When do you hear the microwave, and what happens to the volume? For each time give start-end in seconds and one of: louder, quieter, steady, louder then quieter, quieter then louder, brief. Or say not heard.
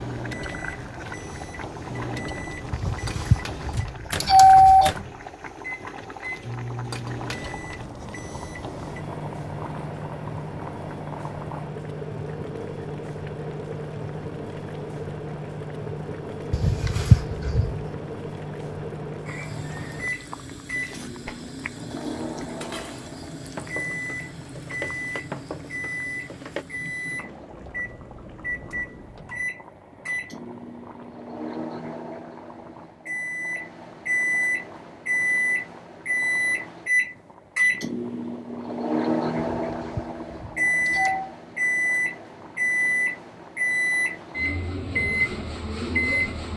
0.0-46.5 louder.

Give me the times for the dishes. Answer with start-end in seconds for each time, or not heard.
20.8-26.6.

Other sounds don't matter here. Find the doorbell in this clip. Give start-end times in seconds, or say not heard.
2.7-4.9, 16.5-17.8, 39.6-41.3.